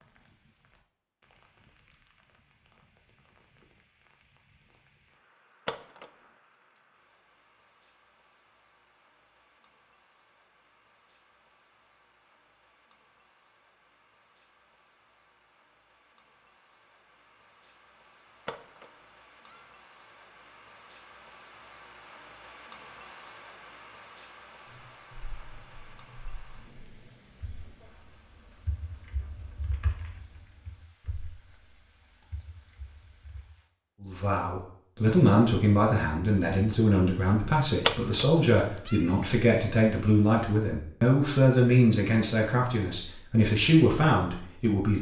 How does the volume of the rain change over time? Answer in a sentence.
The loudness of the rain goes up, then down.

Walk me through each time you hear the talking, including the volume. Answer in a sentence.
You can hear the talking from 34.0 to 44.9 s, at a steady volume.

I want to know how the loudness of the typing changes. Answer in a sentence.
The volume of the typing goes up, then down.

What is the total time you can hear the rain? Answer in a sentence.
You can hear the rain for 34 seconds altogether.